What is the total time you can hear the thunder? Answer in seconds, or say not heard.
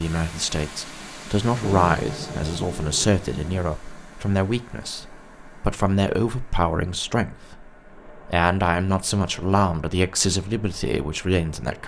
2 s.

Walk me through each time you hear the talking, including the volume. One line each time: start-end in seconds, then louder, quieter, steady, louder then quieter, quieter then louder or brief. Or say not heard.
0.0-11.8 steady.